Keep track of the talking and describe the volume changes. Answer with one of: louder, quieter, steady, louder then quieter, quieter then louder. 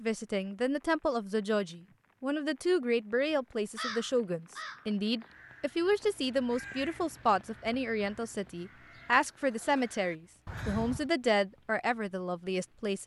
steady.